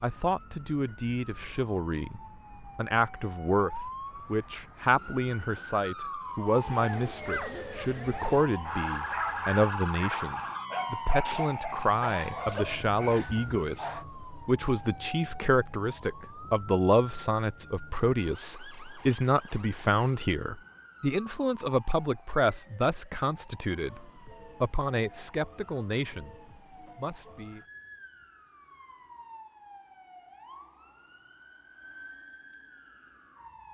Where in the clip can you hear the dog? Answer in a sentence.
The dog can be heard from 6.5 to 14.1 s.